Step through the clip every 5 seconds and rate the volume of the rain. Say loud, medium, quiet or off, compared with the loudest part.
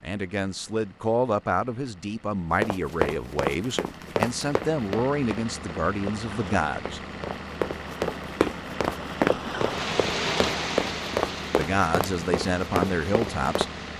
off, loud, loud.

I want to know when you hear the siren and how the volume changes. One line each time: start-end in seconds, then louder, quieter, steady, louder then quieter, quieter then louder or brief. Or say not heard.
not heard.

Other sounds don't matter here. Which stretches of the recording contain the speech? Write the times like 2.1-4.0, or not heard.
0.0-7.0, 11.6-13.7.